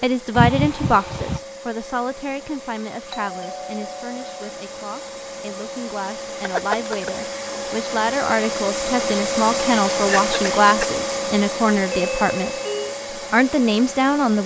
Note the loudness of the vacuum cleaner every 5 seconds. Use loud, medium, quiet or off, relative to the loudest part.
medium, loud, loud.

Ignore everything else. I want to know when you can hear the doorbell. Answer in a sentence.
You can hear the doorbell from 3.1 to 4.5 s and from 11.9 to 12.9 s.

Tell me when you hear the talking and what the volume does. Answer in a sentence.
You can hear the talking from 0.0 to 12.5 s, getting quieter then louder; and briefly from 13.3 to 14.4 s.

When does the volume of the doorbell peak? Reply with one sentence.
The loudest moment of the doorbell is at 12 seconds.